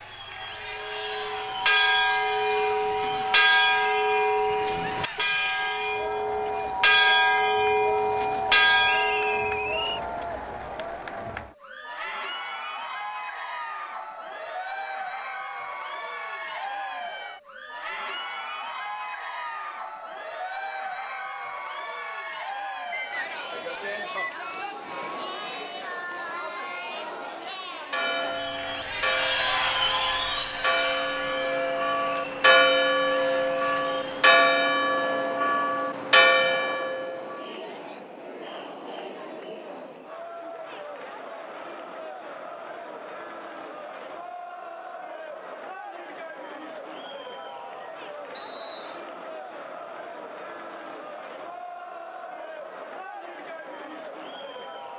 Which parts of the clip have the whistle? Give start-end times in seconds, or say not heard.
8.9-10.0, 22.9-24.7, 48.3-49.0.